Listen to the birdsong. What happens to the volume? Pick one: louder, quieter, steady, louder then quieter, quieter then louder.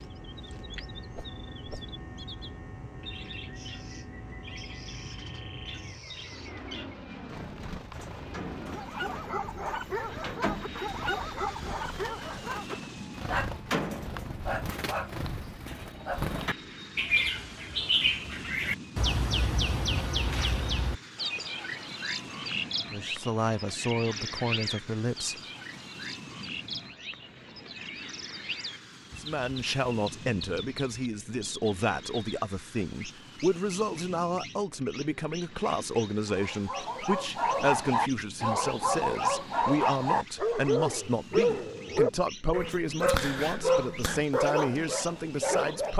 louder then quieter.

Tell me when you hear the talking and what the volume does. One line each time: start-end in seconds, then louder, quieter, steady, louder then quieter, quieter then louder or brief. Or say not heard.
22.9-25.4 brief
29.1-45.9 steady.